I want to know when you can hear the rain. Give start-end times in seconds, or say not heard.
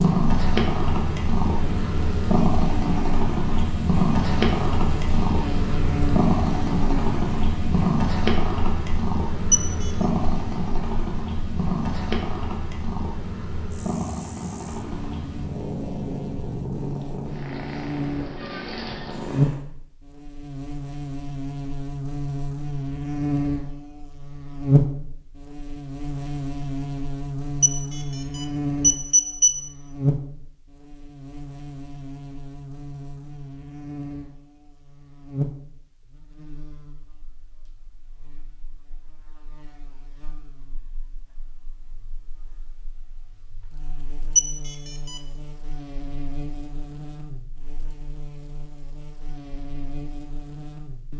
not heard.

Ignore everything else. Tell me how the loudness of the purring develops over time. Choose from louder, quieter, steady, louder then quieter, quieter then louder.
quieter.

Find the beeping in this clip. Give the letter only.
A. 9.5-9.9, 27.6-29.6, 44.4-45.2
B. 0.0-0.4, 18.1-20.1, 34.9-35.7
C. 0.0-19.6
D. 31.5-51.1
A.